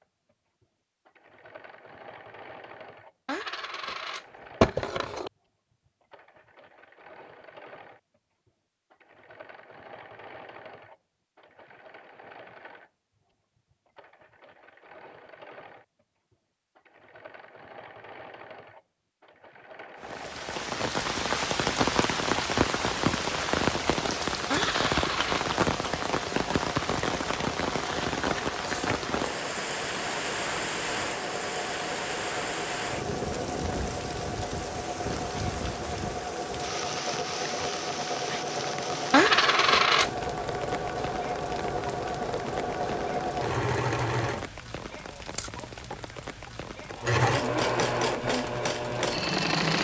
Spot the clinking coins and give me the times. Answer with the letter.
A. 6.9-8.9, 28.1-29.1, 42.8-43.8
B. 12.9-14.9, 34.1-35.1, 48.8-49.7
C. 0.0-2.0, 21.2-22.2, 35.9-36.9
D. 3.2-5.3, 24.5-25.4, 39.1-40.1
D.